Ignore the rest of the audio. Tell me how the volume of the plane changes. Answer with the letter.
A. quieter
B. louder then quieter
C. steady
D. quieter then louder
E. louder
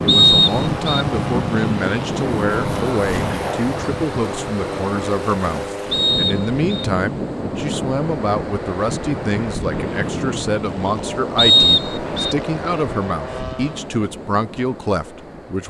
A.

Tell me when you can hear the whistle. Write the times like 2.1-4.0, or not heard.
0.1-1.1, 5.9-6.8, 11.3-12.3.